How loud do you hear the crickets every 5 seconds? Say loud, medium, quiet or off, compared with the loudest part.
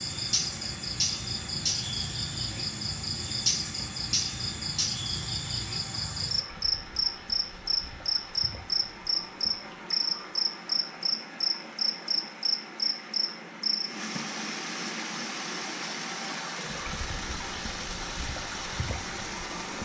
loud, loud, loud, off.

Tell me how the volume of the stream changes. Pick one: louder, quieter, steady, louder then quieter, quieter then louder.
louder.